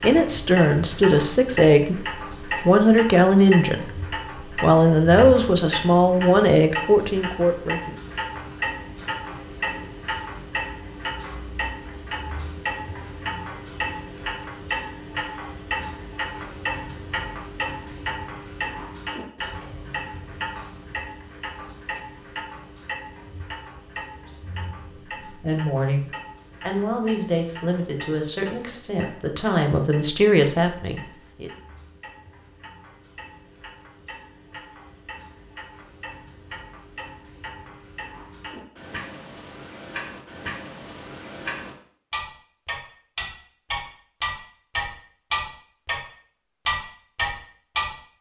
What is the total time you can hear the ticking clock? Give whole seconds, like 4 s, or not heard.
47 s.